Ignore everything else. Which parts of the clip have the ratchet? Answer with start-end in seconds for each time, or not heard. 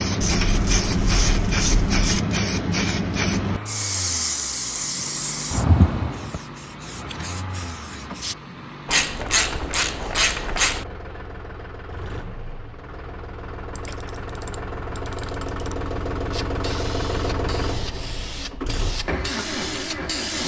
0.2-2.2, 8.8-10.8, 13.8-15.8.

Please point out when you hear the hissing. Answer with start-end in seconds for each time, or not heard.
0.0-8.3, 16.3-20.4.